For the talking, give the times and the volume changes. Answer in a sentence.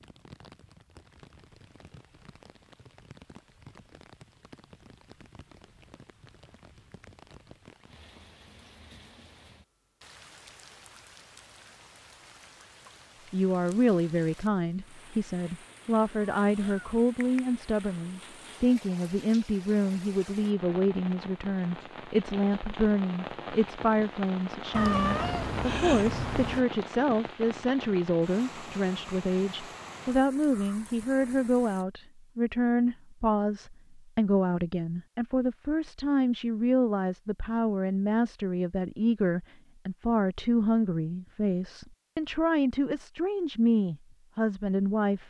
You can hear the talking from 13.3 to 45.2 s, at a steady volume.